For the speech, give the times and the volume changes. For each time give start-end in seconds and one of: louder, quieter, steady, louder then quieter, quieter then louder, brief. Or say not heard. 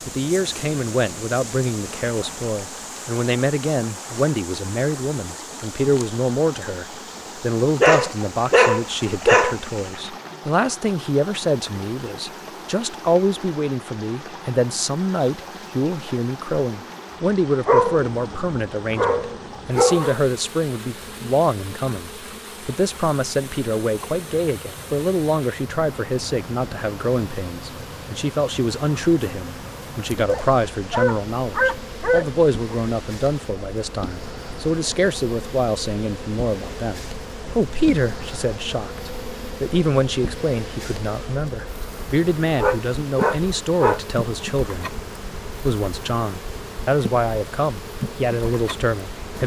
0.1-49.4 steady.